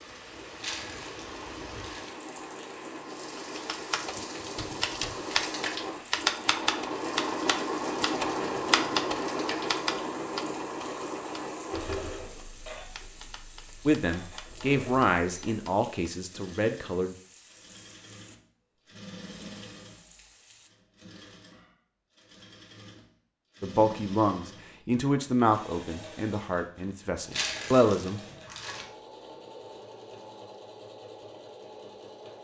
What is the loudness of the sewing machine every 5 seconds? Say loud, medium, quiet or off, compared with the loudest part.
medium, loud, medium, quiet, quiet, quiet, quiet.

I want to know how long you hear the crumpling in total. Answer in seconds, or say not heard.
3 s.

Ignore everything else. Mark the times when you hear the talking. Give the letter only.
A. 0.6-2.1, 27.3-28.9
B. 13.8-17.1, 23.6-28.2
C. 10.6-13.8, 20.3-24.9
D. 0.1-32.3
B.